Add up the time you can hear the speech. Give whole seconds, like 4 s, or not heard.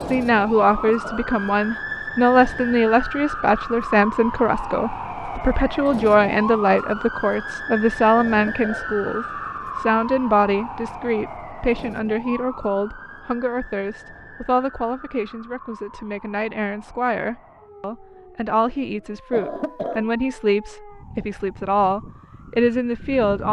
23 s.